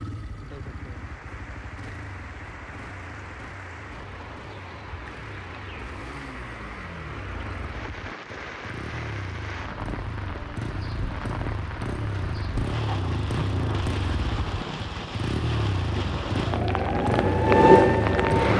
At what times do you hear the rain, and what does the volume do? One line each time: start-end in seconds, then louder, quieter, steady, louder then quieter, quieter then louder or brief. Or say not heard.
0.2-18.5 louder.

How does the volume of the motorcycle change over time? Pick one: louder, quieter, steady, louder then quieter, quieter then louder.
louder.